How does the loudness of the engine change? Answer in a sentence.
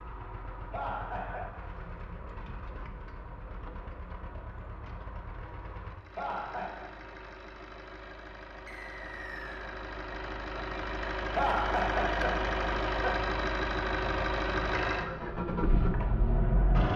The loudness of the engine goes up.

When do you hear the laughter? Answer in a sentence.
The laughter can be heard from 0.7 to 1.4 s, from 6.2 to 6.8 s and from 11.3 to 13.2 s.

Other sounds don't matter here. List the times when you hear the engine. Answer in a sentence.
You can hear the engine from 0.0 to 16.9 s.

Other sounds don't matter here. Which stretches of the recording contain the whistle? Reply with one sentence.
The whistle can be heard from 8.7 to 9.7 s.